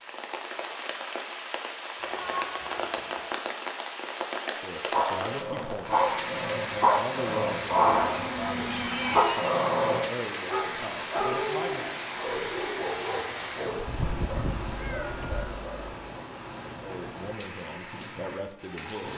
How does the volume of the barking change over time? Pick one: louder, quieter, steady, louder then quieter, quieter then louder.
quieter.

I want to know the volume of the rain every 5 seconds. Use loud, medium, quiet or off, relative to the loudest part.
loud, loud, loud, medium.